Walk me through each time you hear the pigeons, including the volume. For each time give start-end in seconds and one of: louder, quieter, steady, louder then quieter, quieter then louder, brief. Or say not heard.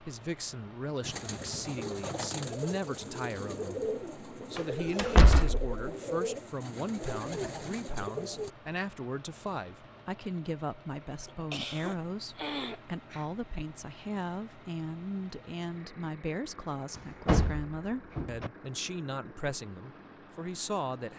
1.0-8.5 steady.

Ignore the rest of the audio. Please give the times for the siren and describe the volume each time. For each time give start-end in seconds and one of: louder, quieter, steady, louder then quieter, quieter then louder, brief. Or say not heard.
not heard.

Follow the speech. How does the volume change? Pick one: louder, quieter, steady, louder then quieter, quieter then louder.
steady.